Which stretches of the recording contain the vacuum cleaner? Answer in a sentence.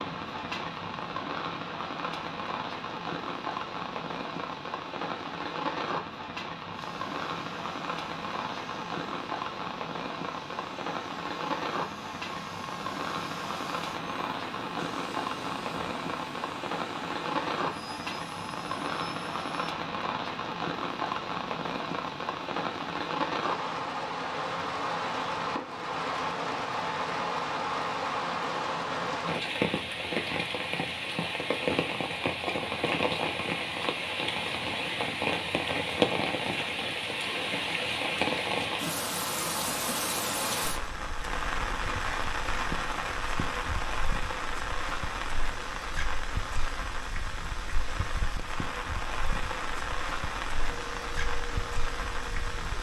You can hear the vacuum cleaner from 6.7 to 19.8 s and from 50.5 to 52.7 s.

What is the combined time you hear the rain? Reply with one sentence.
You can hear the rain for 53 seconds altogether.